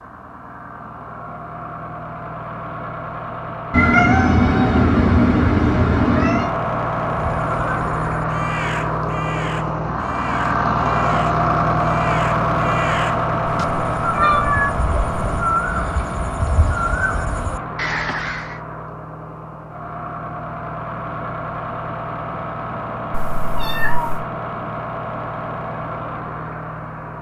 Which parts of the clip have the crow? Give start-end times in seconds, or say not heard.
7.3-18.6.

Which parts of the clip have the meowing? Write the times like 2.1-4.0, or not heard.
3.7-6.5, 13.4-15.4, 23.1-24.2.